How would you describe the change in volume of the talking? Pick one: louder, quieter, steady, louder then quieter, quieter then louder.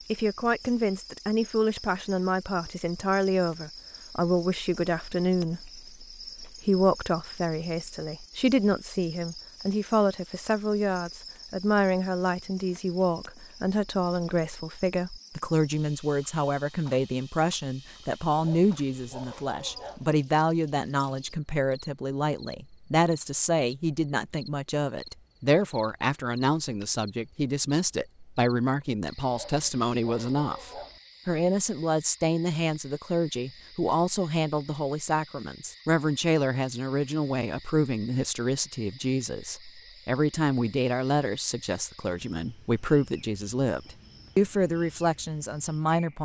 steady.